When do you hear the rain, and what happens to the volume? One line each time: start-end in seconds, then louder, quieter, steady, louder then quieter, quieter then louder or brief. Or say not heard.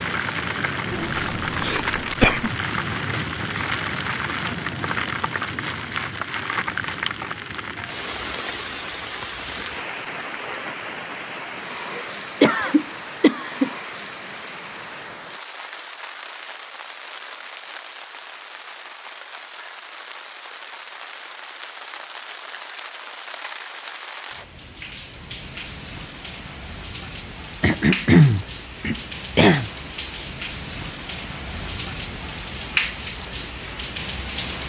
0.0-34.6 quieter then louder.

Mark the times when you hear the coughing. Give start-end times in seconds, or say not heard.
0.9-2.5, 11.9-13.7, 27.6-29.7.